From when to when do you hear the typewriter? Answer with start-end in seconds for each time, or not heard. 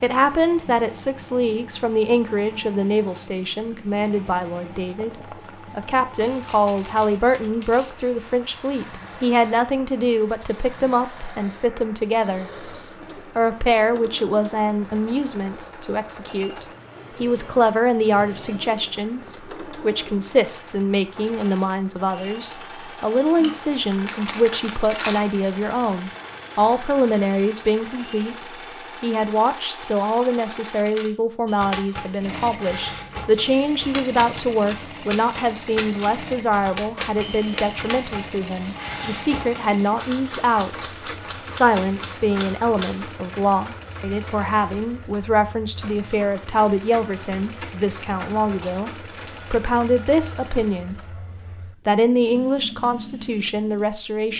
31.4-43.4.